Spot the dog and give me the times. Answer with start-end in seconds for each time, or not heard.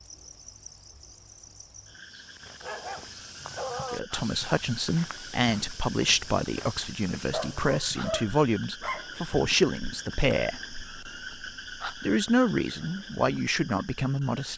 2.1-4.0, 7.3-9.1.